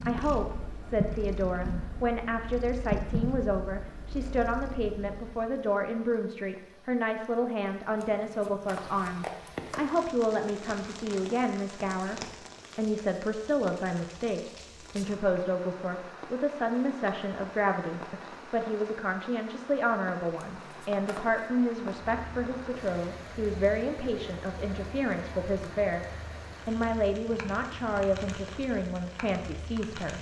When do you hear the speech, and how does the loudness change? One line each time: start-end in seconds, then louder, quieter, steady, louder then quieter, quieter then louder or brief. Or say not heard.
0.0-30.1 steady.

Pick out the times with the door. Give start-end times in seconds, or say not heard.
not heard.